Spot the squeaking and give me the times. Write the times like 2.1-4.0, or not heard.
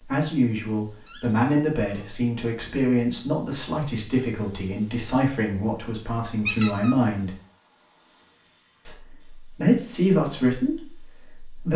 1.1-2.0, 6.5-7.0.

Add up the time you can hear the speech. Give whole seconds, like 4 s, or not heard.
10 s.